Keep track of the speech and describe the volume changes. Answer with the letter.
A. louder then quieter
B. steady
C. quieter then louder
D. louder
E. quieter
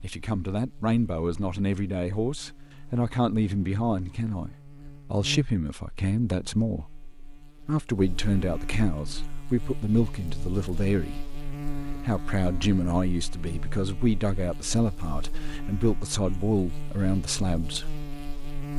B.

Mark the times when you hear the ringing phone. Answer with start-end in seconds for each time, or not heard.
not heard.